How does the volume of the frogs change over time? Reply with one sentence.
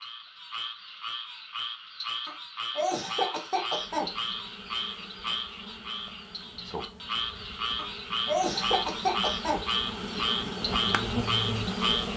The loudness of the frogs goes up.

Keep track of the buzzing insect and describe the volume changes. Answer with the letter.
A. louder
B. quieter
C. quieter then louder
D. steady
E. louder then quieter
A.